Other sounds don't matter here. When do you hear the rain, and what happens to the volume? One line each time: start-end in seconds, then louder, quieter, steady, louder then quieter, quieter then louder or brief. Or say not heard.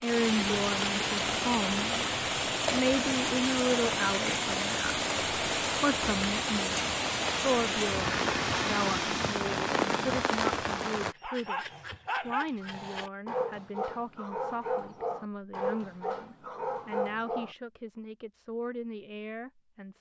0.0-11.2 steady.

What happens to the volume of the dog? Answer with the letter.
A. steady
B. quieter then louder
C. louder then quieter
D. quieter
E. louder
A.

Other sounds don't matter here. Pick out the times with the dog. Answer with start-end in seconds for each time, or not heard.
11.2-17.6.